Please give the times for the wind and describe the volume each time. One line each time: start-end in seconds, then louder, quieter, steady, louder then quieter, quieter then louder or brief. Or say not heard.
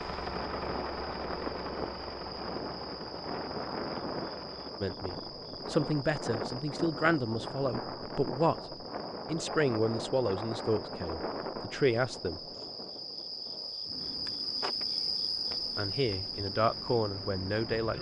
0.0-17.9 quieter.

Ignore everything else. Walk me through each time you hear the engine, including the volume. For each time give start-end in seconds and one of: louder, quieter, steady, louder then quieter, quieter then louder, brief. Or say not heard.
0.0-4.8 quieter.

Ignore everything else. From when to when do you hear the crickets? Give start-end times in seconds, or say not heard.
0.0-17.9.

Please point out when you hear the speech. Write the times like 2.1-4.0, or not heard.
4.8-12.4, 15.8-17.9.